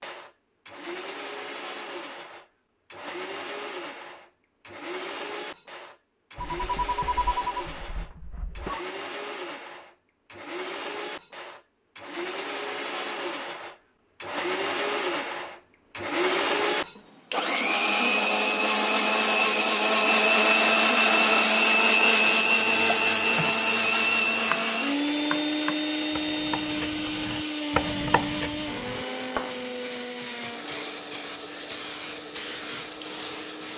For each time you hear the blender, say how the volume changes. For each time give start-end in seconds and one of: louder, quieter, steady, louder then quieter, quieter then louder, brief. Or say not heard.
0.0-33.7 louder then quieter.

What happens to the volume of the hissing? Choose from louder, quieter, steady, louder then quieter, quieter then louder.
louder.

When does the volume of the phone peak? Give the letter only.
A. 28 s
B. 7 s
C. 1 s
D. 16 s
B.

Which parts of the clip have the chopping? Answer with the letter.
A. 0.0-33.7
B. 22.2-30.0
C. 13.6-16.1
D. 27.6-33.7
B.